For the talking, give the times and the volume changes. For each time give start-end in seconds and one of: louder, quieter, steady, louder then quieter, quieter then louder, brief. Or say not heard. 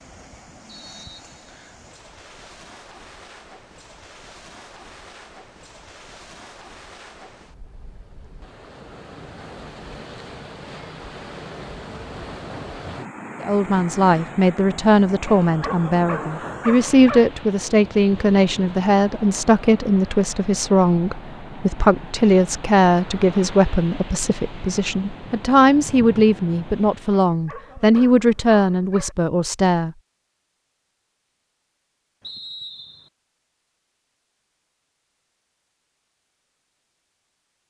13.4-29.9 steady.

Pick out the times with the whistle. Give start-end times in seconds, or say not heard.
0.7-1.8, 32.2-33.1.